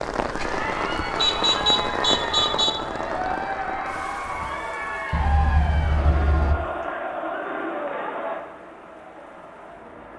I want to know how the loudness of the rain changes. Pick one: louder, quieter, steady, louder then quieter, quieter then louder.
quieter.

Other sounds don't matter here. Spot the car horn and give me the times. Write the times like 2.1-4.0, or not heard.
1.1-2.7, 5.1-6.5.